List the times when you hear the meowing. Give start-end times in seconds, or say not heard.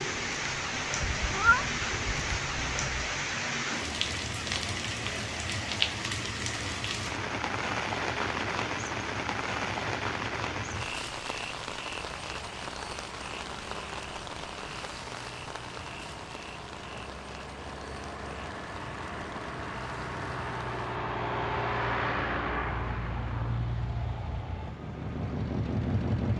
1.0-2.4.